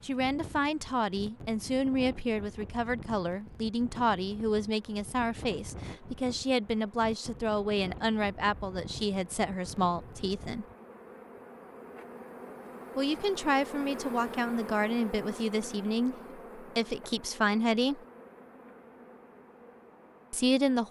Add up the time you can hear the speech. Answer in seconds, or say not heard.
16 s.